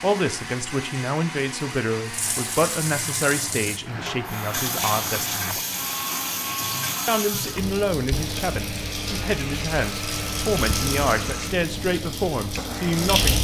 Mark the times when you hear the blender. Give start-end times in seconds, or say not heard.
0.0-13.3.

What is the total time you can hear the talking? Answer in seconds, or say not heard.
12 s.